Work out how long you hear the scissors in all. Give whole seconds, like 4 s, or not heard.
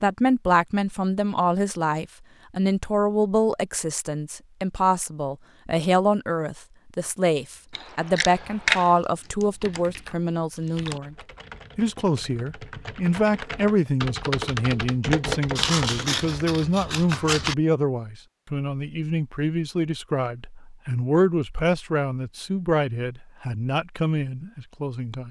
3 s.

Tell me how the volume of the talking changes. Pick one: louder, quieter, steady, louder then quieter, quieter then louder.
steady.